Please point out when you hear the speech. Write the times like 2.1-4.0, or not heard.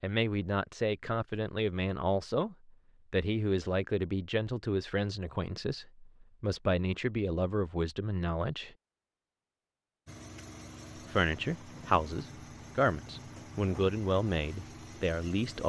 0.0-8.7, 11.1-15.6.